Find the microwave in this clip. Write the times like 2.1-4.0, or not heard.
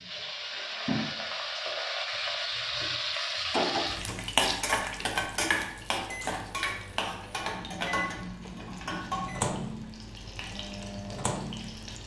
5.3-12.0.